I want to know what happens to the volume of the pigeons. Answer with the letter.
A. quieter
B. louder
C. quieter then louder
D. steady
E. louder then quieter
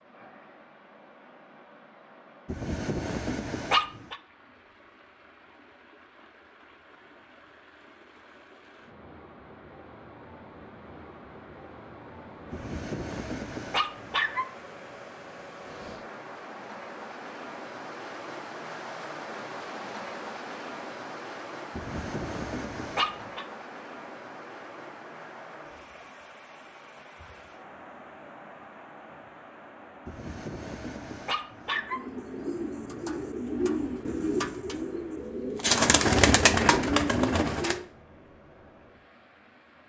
B.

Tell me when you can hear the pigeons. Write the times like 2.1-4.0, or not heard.
31.6-37.8.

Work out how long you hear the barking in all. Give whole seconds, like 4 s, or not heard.
7 s.